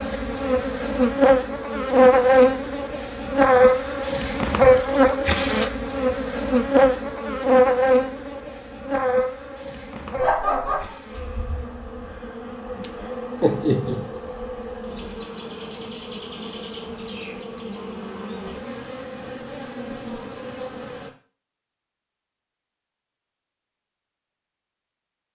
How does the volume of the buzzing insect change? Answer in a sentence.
The loudness of the buzzing insect goes down.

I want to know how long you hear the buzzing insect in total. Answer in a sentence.
You can hear the buzzing insect for 21 seconds altogether.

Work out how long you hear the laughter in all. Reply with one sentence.
The laughter can be heard for 2 seconds in total.